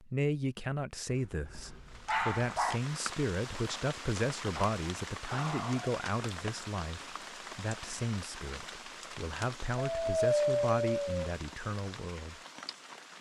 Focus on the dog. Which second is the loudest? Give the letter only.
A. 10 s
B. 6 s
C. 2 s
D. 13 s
A.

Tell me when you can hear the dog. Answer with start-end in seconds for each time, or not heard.
1.1-2.8, 4.5-5.9, 9.8-11.3.